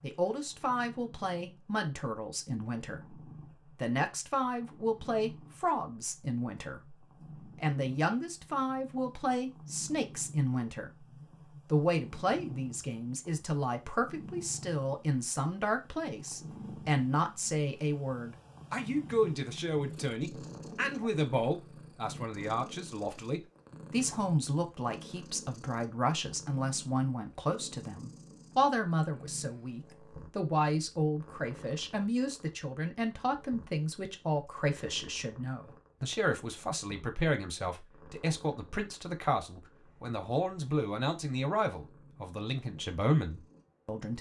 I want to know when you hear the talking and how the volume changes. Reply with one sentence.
You can hear the talking from 0.0 to 11.1 s, at a steady volume; and from 11.7 to 44.1 s, at a steady volume.